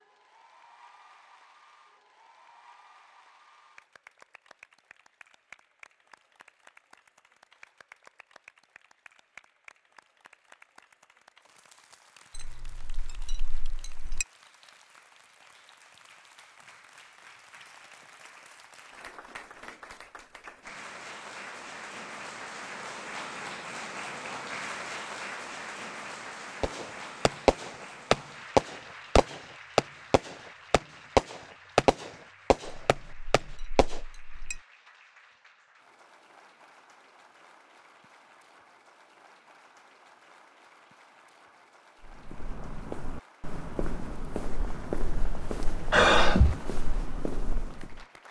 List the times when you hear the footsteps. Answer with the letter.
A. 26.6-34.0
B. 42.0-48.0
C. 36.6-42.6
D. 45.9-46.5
B.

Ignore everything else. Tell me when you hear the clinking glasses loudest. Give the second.
14 s.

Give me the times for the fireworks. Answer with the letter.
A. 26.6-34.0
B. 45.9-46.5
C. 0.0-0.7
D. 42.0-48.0
A.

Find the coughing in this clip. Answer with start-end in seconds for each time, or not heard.
45.9-46.5.